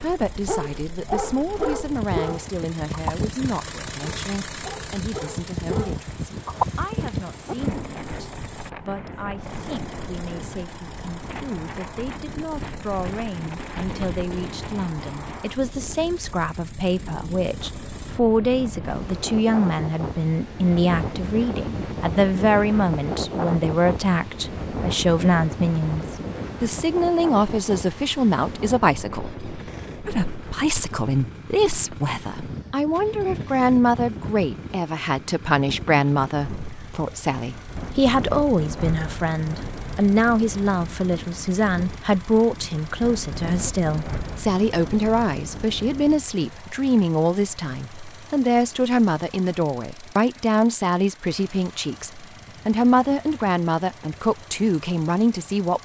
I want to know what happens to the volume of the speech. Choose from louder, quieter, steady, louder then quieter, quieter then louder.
louder.